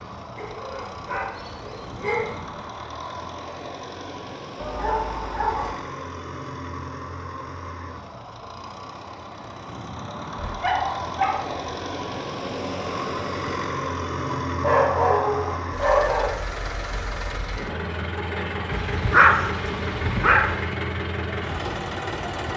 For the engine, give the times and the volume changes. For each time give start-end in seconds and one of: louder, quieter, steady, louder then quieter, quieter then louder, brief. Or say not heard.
0.0-22.5 louder.